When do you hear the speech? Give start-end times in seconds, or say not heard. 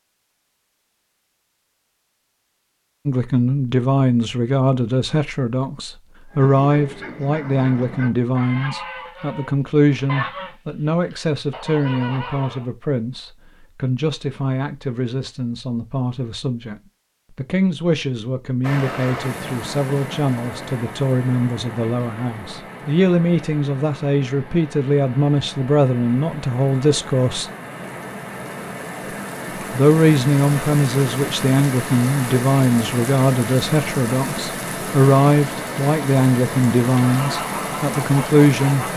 3.0-27.5, 29.7-38.9.